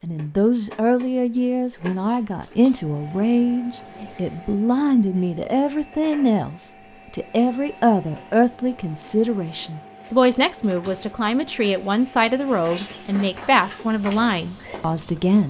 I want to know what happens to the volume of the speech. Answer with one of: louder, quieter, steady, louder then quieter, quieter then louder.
steady.